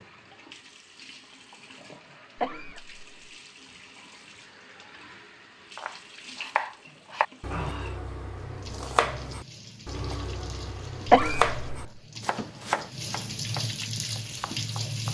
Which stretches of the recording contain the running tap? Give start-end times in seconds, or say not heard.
0.0-15.0.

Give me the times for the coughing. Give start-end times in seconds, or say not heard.
2.4-3.3, 11.1-11.6.